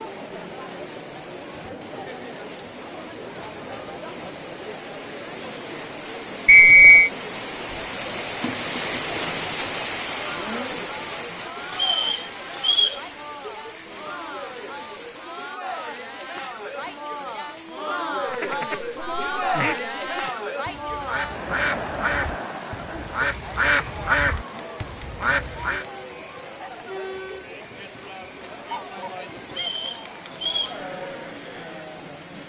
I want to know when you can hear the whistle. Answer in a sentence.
You can hear the whistle from 6.5 to 7.1 s, from 11.8 to 13.0 s and from 29.5 to 30.8 s.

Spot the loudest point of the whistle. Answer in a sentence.
The volume of the whistle peaks at 7 seconds.